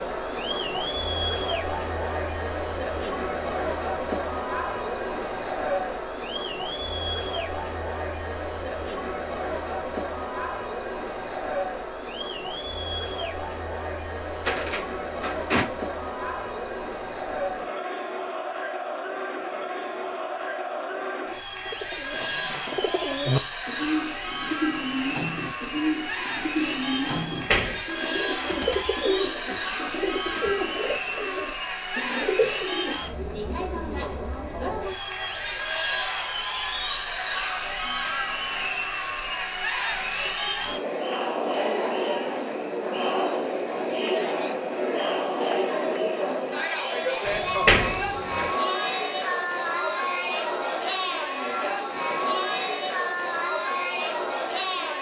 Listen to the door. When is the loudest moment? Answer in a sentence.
The volume of the door peaks at 48 seconds.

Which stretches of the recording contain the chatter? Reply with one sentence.
The chatter can be heard from 0.0 to 54.9 s.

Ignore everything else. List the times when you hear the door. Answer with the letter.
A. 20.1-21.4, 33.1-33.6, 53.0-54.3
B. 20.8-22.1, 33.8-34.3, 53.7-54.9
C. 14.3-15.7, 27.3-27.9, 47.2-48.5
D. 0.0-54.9
C.